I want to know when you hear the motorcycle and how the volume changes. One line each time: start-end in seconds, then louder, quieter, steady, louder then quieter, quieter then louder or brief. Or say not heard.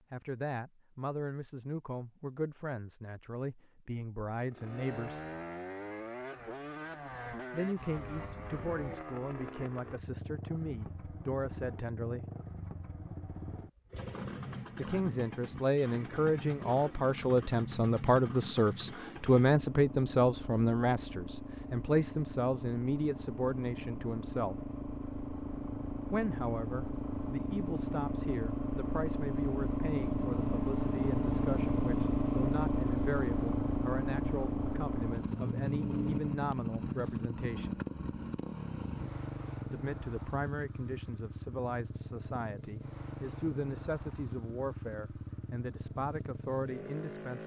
4.4-47.4 louder then quieter.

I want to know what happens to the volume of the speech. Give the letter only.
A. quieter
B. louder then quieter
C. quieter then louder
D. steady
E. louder
B.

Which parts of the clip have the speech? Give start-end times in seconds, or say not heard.
0.1-5.2, 7.5-12.2, 14.8-24.6, 26.1-37.8, 39.7-47.4.